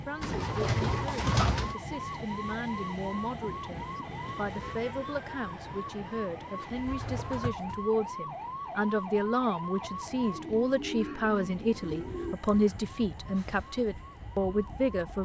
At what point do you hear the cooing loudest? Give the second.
1 s.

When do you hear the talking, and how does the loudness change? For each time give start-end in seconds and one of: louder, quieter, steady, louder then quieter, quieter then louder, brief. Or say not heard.
0.1-15.2 louder.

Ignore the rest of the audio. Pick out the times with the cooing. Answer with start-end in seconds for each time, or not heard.
0.2-1.8, 6.6-7.9, 10.3-12.3.